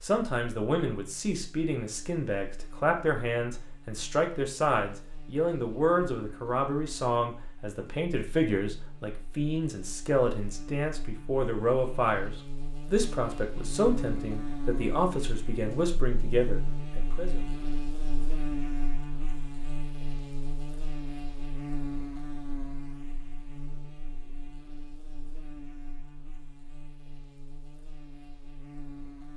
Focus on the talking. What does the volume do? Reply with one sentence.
The volume of the talking stays about the same.